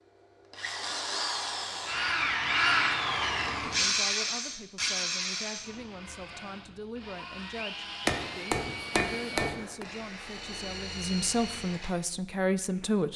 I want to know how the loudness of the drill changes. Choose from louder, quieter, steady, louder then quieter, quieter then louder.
quieter.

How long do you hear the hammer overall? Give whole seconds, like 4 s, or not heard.
2 s.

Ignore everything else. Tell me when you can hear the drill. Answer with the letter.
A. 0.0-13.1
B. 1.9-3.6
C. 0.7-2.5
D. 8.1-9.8
A.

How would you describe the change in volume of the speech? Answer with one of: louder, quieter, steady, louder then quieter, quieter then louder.
louder.